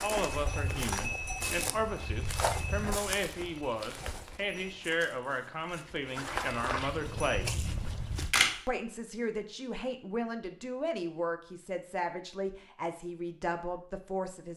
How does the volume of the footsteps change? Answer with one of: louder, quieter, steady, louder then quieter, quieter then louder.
quieter then louder.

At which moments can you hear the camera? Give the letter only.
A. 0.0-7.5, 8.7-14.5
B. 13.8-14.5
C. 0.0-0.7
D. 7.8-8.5
D.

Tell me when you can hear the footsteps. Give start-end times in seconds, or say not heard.
0.0-8.3.